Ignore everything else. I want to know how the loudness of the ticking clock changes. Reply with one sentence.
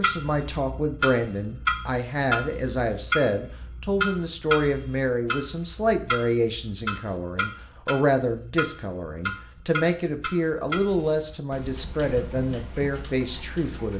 The volume of the ticking clock goes down.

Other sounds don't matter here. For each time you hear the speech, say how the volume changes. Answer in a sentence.
You can hear the speech from 0.0 to 13.9 s, at a steady volume.